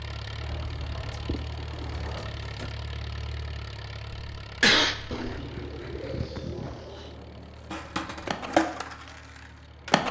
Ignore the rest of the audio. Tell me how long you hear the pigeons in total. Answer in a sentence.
The pigeons can be heard for 4 seconds in total.